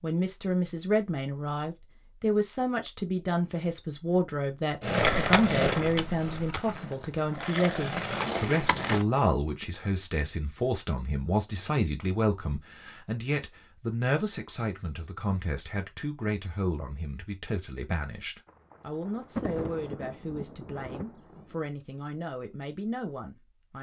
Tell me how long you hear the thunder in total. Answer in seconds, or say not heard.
3 s.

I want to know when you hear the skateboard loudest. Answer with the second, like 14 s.
5 s.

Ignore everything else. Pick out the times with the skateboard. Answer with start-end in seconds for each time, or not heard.
4.8-9.1.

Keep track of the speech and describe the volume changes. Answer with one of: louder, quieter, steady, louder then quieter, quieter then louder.
quieter.